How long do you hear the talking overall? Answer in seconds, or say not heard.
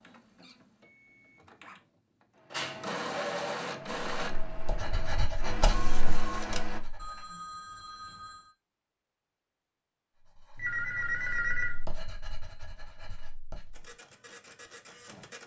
not heard.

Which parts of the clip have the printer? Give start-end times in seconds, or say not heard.
0.0-6.8, 13.7-15.4.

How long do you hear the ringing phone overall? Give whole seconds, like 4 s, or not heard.
4 s.